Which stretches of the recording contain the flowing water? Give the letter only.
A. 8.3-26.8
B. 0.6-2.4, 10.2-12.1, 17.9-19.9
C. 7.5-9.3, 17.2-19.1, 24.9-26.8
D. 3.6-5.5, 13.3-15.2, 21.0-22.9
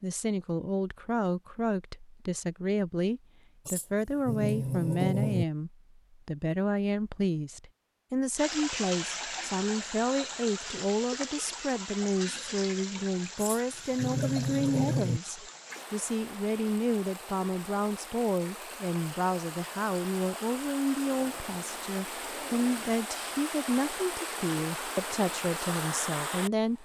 A.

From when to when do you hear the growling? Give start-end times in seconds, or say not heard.
3.6-5.5, 13.3-15.2, 21.0-22.9.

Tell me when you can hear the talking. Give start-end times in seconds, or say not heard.
0.0-26.8.